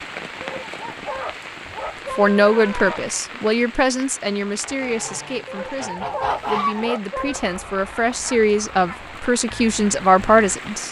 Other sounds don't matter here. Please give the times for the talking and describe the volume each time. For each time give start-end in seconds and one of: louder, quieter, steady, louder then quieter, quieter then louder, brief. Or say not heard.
2.1-10.8 quieter then louder.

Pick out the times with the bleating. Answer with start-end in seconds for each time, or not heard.
not heard.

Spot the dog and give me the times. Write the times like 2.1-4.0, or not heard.
0.4-3.0, 5.5-7.4.